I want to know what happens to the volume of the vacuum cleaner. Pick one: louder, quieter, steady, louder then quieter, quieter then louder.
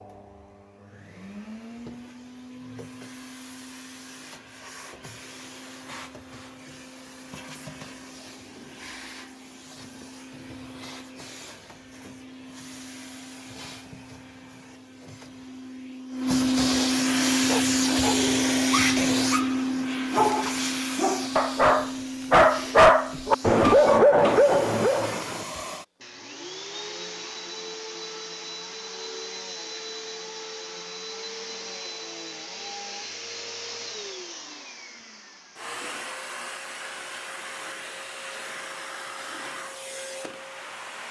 louder then quieter.